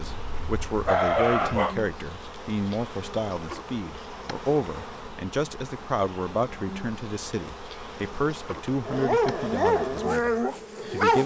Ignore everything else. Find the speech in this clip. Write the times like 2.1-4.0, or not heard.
0.0-11.2.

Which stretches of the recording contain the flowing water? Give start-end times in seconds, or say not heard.
not heard.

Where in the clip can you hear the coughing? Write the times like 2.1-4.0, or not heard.
not heard.